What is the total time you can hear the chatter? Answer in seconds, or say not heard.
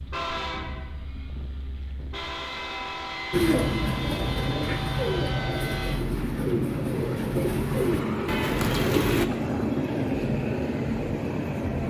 not heard.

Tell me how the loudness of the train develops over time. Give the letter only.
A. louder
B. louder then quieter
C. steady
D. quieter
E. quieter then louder
A.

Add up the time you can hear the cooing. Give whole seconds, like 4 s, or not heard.
6 s.